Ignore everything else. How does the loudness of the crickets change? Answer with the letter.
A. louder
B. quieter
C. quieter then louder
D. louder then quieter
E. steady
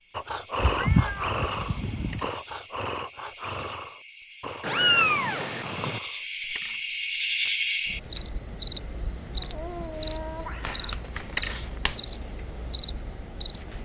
A.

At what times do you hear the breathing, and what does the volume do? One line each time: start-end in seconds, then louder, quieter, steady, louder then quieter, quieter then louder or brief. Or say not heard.
0.1-6.5 quieter.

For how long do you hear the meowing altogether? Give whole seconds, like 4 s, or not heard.
5 s.